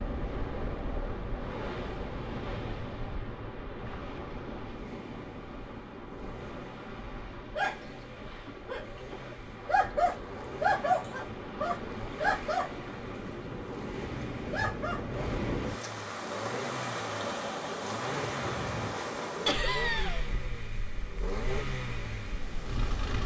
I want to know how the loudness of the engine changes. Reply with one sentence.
The volume of the engine goes up.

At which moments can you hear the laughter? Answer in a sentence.
The laughter can be heard from 19.4 to 20.2 s.